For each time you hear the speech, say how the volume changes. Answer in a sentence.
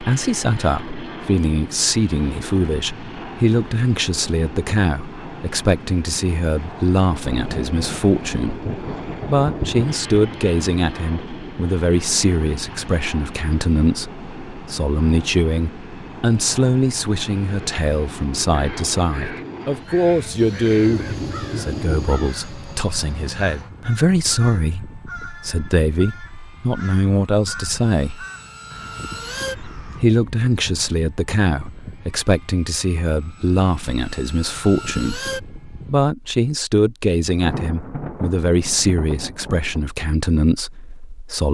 You can hear the speech from 0.0 to 28.2 s, at a steady volume; and from 29.8 to 41.4 s, at a steady volume.